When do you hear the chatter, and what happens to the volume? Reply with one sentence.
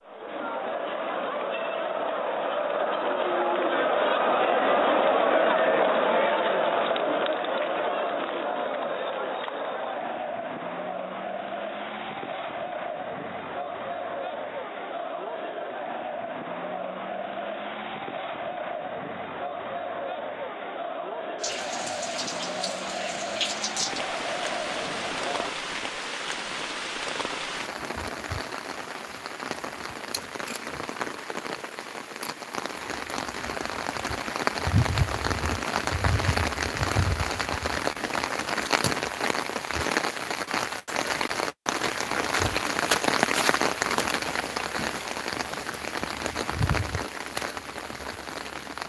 You can hear the chatter from 0.0 to 25.5 s, getting quieter.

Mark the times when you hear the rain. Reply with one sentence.
The rain can be heard from 21.4 to 48.8 s.